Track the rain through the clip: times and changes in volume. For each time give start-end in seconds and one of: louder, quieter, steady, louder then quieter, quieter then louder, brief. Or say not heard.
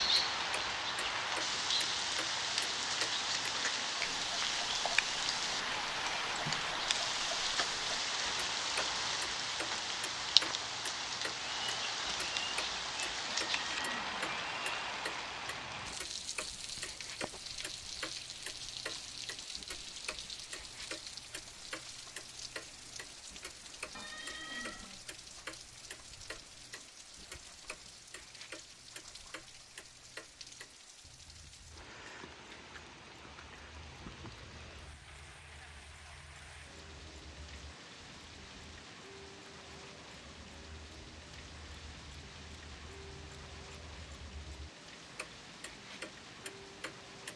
0.0-47.3 quieter.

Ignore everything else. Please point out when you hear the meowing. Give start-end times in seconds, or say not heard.
13.2-14.3, 23.9-25.1.